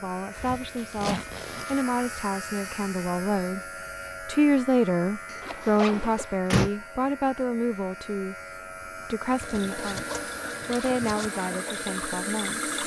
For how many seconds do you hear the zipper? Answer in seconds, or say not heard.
4 s.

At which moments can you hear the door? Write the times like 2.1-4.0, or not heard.
5.3-6.7.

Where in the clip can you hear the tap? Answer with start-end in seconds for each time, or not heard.
9.2-12.8.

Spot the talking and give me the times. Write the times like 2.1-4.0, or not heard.
0.0-3.6, 4.2-10.1, 10.7-12.7.